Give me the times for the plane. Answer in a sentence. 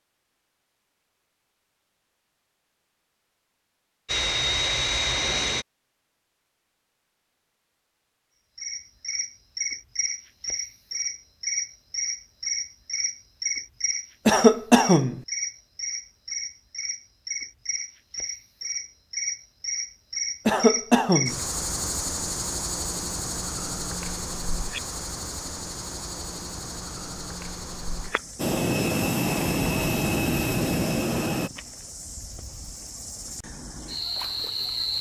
The plane can be heard from 4.0 to 5.7 s and from 28.4 to 31.5 s.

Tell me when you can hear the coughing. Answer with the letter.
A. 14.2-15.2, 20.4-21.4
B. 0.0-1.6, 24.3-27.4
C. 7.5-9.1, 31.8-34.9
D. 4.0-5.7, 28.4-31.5
A.